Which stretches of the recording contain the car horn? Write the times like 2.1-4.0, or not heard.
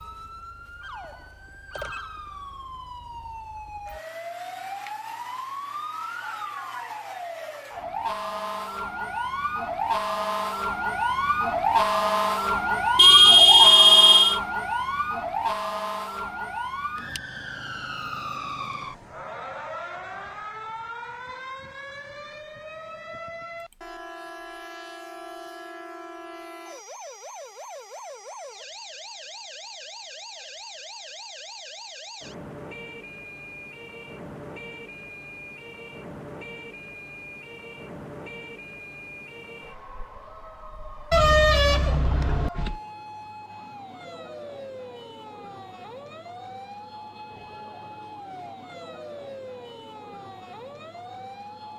12.9-14.4, 41.1-42.8.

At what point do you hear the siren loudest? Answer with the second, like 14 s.
12 s.